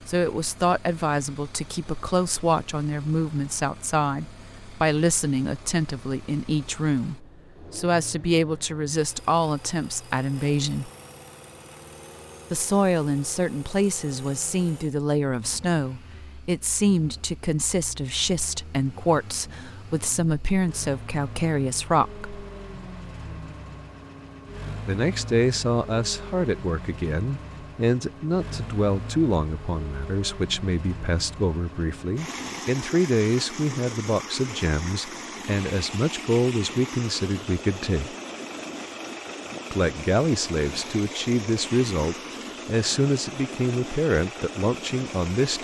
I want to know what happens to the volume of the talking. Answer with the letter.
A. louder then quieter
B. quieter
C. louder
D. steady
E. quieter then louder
D.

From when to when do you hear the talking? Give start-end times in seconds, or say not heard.
0.1-10.9, 12.5-22.4, 24.9-38.1, 39.7-45.5.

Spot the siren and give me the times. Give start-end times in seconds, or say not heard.
not heard.